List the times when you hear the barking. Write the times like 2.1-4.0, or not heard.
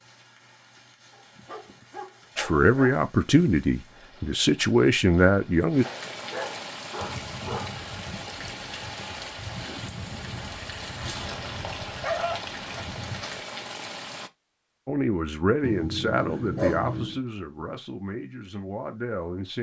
1.1-3.0, 5.8-7.8, 10.4-12.3, 15.6-17.2.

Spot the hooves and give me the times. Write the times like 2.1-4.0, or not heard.
7.0-13.4.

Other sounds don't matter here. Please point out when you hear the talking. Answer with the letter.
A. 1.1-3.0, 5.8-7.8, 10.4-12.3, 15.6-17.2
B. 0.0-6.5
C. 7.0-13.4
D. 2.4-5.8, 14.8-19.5
D.